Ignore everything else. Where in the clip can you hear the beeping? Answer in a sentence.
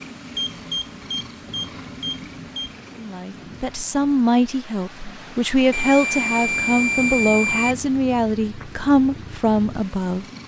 The beeping can be heard from 0.3 to 2.8 s and from 5.7 to 7.8 s.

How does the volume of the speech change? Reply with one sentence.
The volume of the speech stays about the same.